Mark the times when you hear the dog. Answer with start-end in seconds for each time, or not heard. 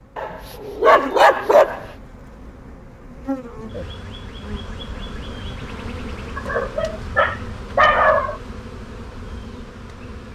0.1-1.9, 6.3-8.3.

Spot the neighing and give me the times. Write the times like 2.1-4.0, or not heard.
not heard.